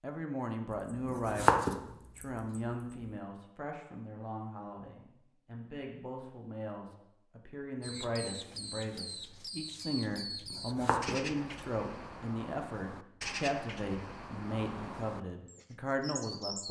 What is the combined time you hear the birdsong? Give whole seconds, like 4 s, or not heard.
9 s.